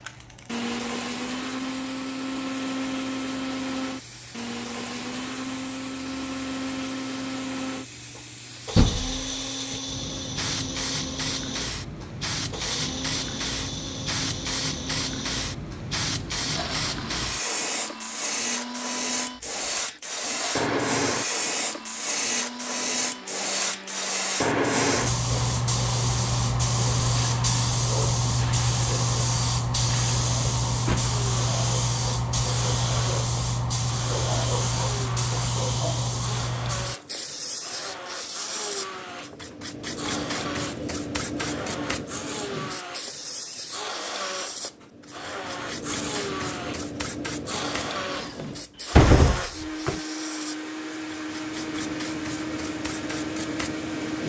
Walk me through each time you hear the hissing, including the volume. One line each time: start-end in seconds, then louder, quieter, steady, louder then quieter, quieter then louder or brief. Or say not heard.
0.0-54.2 louder then quieter.